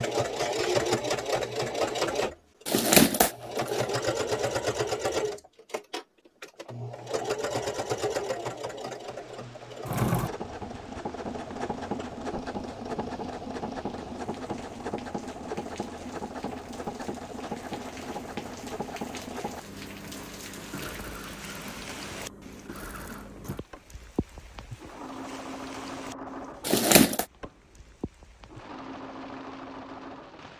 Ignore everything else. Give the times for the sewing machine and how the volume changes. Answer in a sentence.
The sewing machine can be heard from 0.0 to 30.5 s, getting quieter.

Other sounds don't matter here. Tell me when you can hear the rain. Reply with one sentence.
The rain can be heard from 8.9 to 30.5 s.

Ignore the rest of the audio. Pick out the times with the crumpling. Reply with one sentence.
You can hear the crumpling from 2.6 to 3.9 s and from 26.6 to 27.2 s.